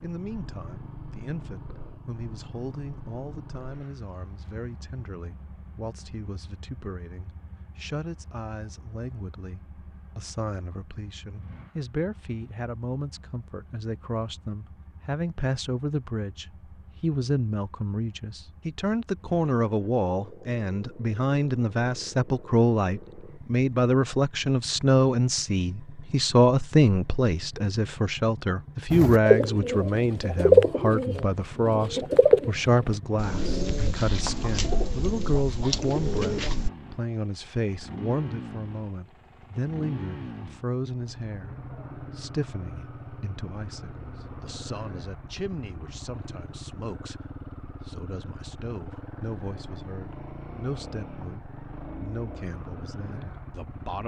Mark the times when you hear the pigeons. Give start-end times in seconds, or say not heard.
28.9-36.7.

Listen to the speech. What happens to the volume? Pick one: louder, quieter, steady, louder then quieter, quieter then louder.
louder then quieter.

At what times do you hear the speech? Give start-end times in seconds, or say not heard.
0.0-54.0.